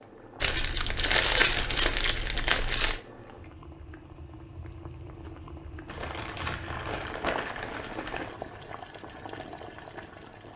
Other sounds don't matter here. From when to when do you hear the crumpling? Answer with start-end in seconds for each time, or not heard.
0.4-3.0, 5.8-8.3.